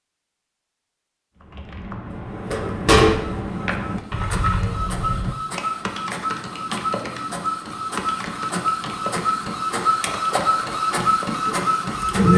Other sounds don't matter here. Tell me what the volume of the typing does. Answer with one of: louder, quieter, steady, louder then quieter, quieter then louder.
quieter.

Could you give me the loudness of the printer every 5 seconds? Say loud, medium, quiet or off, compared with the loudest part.
loud, medium, loud.